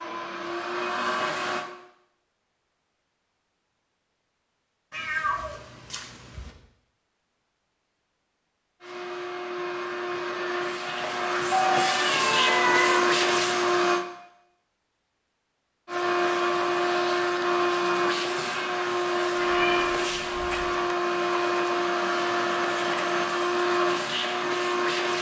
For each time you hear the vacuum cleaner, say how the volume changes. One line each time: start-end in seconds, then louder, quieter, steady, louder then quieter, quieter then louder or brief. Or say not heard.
0.0-1.6 brief
8.8-14.1 louder
15.8-25.1 steady.